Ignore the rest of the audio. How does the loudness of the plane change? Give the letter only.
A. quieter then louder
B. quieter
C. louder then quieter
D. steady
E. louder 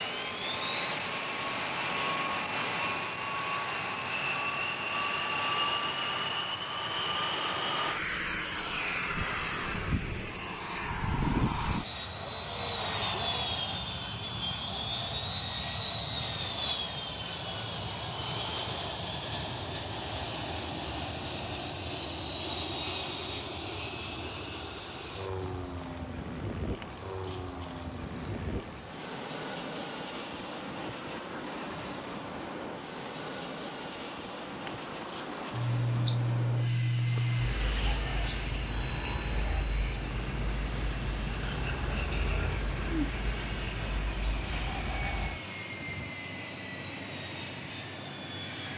B.